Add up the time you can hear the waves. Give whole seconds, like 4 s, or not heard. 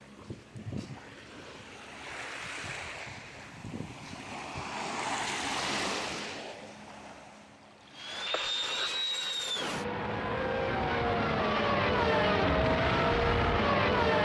8 s.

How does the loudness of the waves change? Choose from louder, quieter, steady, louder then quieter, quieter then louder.
louder then quieter.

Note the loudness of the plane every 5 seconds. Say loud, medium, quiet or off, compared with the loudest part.
off, medium, loud.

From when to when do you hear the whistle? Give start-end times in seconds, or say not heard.
not heard.